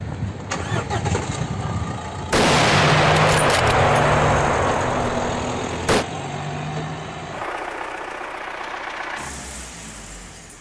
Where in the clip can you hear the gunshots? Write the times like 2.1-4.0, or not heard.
2.3-6.0.